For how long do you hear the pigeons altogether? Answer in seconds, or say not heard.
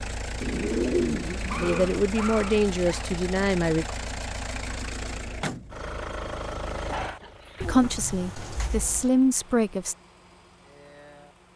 3 s.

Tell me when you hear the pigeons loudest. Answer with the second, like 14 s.
1 s.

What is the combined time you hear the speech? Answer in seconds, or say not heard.
5 s.